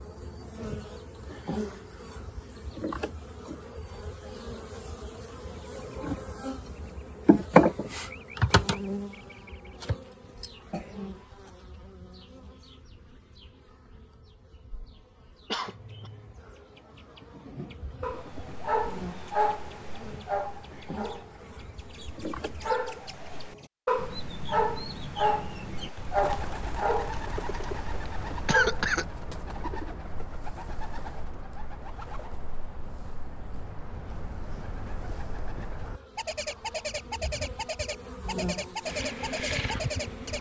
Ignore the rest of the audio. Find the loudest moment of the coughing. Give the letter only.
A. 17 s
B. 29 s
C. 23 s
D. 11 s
B.